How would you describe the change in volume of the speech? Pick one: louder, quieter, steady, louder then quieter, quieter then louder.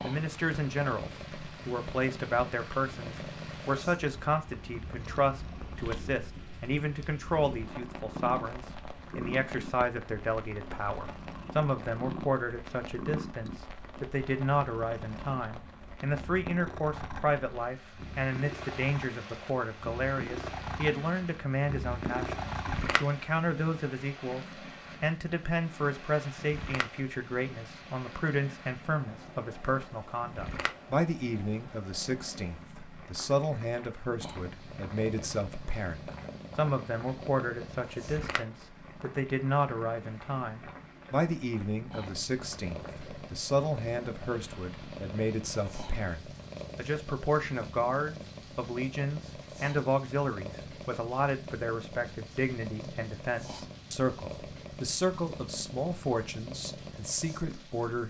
steady.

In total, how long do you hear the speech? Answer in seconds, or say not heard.
58 s.